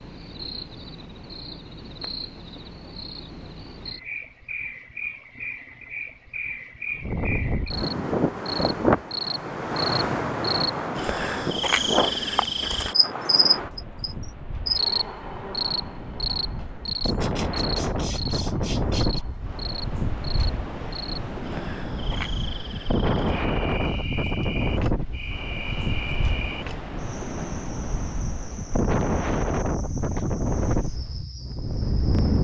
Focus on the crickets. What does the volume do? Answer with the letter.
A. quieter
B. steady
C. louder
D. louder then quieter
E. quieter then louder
D.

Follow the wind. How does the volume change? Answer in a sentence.
The loudness of the wind goes down, then up.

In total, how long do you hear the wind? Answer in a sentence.
You can hear the wind for 25 seconds altogether.